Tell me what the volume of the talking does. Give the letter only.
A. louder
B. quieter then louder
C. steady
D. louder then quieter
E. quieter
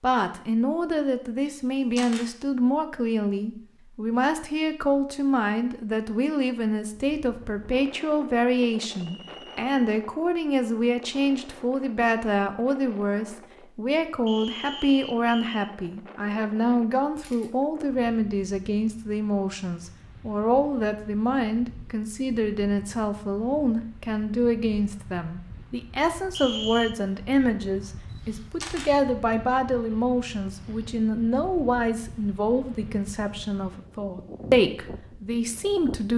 C.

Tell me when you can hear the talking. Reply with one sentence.
The talking can be heard from 0.0 to 36.1 s.